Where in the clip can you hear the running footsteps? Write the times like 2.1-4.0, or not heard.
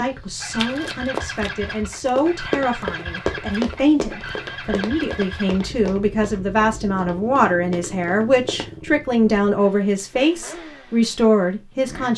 0.6-8.7.